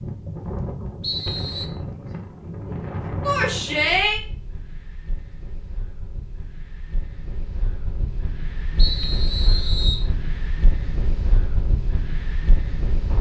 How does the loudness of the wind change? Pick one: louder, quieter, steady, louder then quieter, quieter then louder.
quieter then louder.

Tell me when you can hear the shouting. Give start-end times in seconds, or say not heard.
3.2-4.2.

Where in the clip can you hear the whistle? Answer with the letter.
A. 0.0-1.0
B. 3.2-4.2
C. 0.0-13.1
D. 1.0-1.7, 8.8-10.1
D.